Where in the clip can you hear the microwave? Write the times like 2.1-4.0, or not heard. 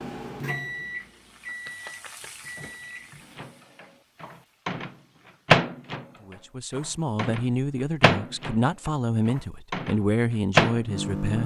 0.0-11.4.